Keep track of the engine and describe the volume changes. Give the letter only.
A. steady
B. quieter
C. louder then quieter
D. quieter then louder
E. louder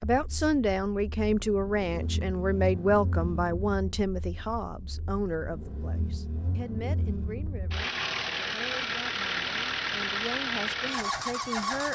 E.